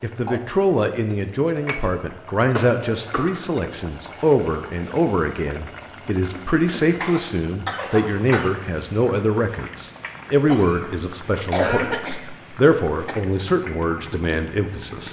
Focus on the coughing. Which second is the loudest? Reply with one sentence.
The loudest moment of the coughing is at 12 seconds.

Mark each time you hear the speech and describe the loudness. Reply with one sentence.
The speech can be heard from 0.0 to 15.0 s, at a steady volume.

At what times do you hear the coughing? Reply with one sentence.
You can hear the coughing from 2.5 to 3.4 s, from 6.3 to 8.5 s and from 10.4 to 13.2 s.